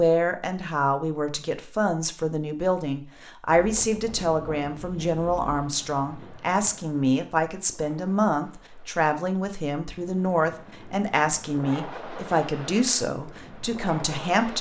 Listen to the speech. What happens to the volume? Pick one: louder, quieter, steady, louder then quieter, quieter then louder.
steady.